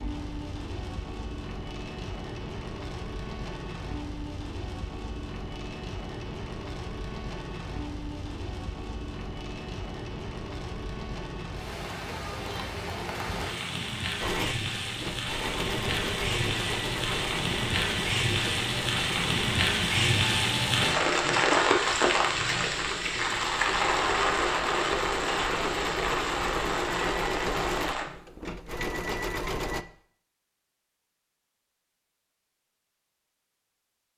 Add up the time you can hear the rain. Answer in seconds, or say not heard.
28 s.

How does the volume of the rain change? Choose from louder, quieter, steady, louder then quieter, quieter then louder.
louder.